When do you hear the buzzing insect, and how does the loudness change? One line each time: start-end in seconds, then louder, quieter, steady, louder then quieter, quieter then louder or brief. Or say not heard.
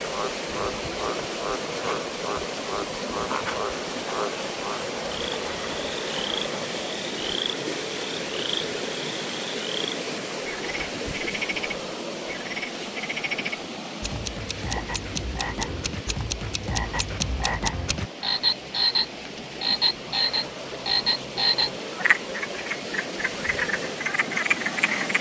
not heard.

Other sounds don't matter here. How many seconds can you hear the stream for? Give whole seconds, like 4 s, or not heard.
25 s.